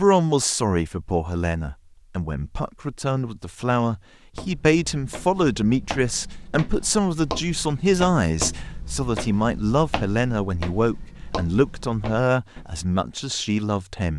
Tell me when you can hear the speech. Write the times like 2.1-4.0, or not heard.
0.0-14.1.